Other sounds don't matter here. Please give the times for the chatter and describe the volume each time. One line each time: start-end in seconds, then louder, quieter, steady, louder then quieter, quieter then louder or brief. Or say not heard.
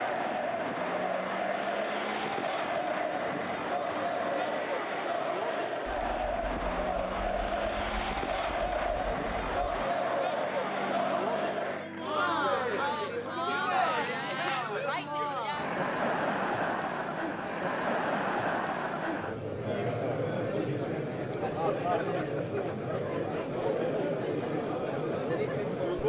0.0-26.0 steady.